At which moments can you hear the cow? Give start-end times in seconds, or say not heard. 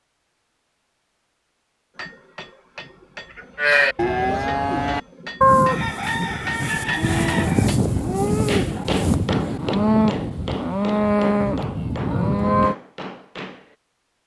3.5-12.8.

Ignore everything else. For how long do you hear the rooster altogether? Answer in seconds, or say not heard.
2 s.